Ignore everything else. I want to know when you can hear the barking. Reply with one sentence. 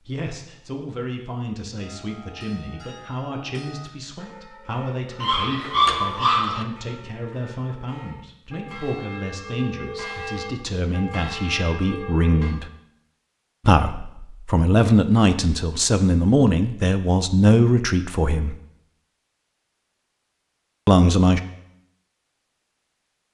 The barking can be heard from 5.2 to 6.7 s.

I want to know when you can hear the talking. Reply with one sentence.
You can hear the talking from 0.1 to 12.7 s, from 13.7 to 18.6 s and from 20.9 to 21.4 s.